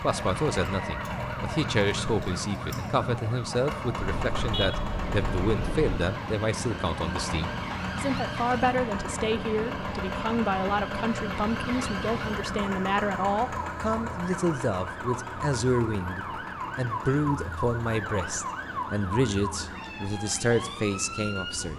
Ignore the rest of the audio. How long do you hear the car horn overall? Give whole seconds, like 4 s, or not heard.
2 s.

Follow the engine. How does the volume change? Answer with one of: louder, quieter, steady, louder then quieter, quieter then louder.
quieter.